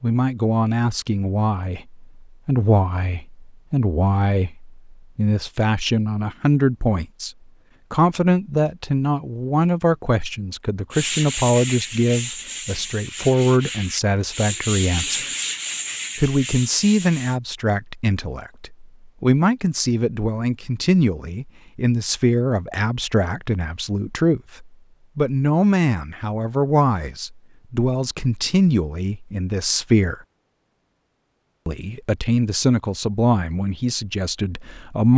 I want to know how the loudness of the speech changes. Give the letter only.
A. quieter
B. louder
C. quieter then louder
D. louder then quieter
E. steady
E.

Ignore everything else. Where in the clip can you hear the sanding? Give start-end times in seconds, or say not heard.
10.9-17.4.